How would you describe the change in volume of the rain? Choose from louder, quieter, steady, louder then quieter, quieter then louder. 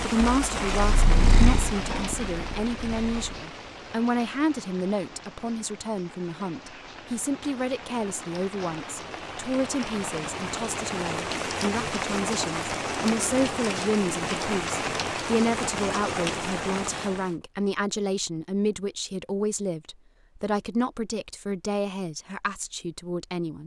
quieter then louder.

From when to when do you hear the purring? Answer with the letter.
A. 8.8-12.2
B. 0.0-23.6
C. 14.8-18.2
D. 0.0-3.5
D.